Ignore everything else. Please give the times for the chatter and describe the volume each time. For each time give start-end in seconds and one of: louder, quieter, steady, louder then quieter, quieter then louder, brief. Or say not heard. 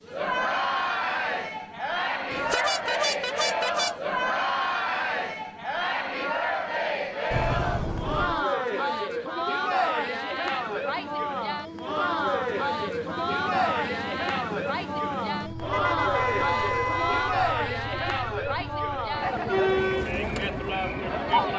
0.1-21.5 steady.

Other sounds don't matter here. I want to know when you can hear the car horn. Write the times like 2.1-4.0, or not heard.
2.3-4.0, 7.3-8.4, 15.6-17.4.